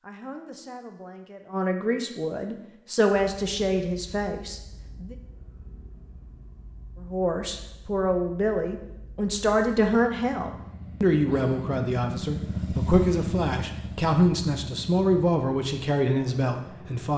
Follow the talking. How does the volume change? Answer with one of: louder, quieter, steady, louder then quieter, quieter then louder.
louder.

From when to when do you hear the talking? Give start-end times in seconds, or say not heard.
0.0-5.2, 7.0-17.1.